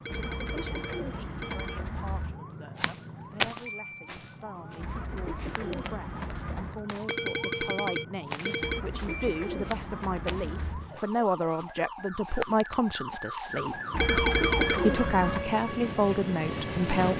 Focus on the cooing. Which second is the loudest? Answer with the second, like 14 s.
15 s.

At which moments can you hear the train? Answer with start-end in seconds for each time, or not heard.
13.4-17.1.